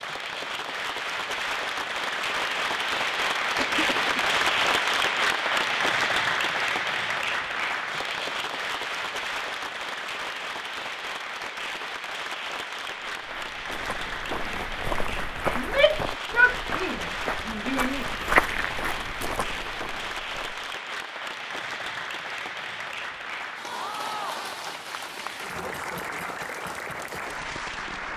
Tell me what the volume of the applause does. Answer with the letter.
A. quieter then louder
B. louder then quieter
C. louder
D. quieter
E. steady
D.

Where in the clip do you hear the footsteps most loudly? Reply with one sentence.
The loudest moment of the footsteps is at 18 seconds.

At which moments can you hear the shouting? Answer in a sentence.
You can hear the shouting from 15.6 to 18.1 s.